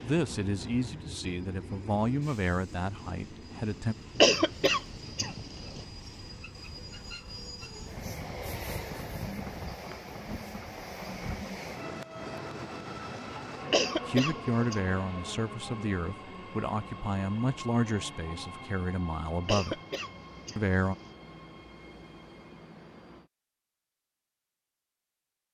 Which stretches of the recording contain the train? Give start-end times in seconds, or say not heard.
0.0-23.3.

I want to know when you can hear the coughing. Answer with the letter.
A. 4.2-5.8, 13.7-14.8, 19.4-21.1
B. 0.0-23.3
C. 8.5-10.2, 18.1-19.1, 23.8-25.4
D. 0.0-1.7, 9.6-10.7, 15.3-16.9
A.